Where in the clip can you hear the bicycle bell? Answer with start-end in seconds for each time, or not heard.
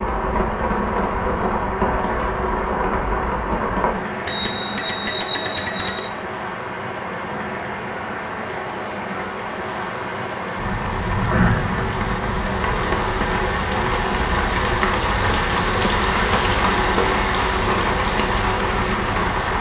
4.2-6.1.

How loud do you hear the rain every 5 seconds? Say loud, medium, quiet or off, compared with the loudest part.
loud, medium, loud, loud.